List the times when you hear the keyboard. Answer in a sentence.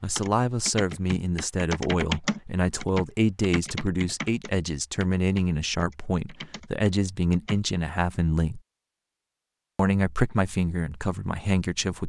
You can hear the keyboard from 0.1 to 7.7 s.